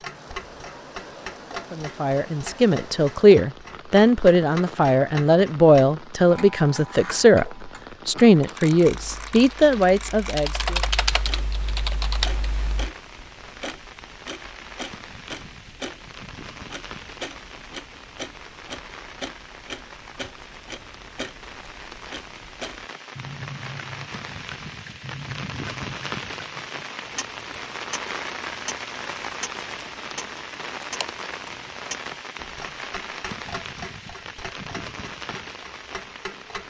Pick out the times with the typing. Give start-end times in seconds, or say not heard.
9.1-12.9.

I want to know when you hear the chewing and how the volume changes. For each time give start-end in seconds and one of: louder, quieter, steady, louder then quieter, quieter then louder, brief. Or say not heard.
not heard.